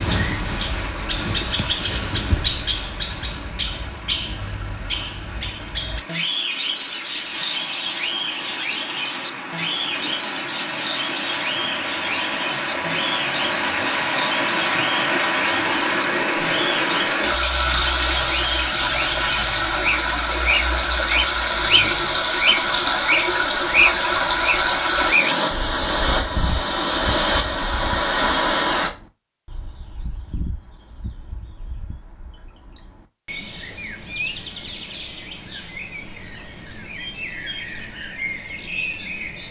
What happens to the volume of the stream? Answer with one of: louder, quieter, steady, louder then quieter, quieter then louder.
louder.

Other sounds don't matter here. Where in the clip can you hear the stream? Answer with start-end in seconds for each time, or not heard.
0.0-28.9.